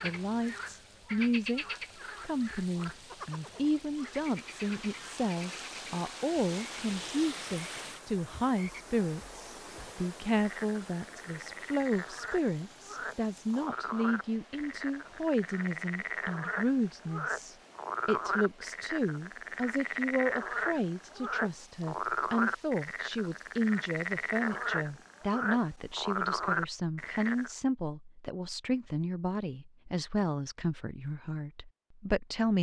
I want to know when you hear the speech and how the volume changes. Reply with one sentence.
You can hear the speech from 0.0 to 32.5 s, at a steady volume.